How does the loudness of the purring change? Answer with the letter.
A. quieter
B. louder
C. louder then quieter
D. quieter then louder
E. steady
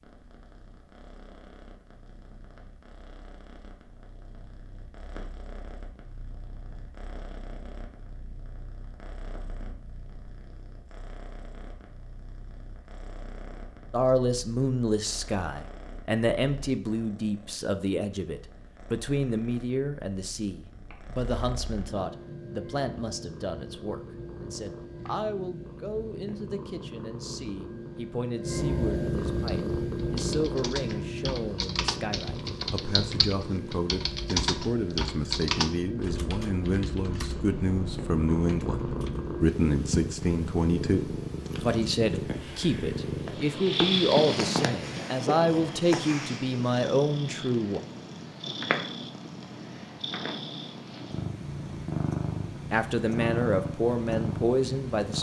B.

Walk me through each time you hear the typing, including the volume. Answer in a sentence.
The typing can be heard from 29.4 to 39.3 s, getting louder then quieter.